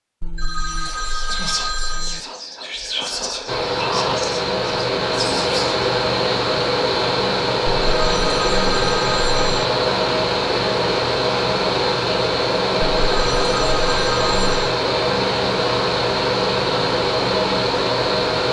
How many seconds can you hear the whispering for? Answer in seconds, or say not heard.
5 s.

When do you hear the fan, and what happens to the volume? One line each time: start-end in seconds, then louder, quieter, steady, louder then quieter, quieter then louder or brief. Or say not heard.
3.5-18.4 steady.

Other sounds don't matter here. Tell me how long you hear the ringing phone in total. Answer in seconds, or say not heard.
6 s.